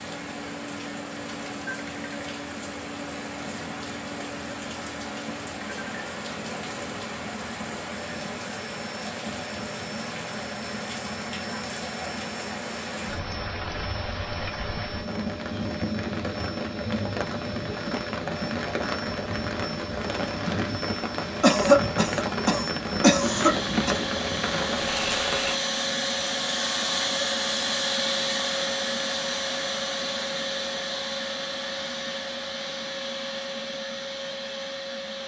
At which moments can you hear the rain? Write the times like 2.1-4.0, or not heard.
0.0-25.6.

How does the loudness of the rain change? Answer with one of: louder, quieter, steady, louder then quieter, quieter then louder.
louder.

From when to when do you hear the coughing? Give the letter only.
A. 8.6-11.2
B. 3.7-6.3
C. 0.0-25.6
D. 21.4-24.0
D.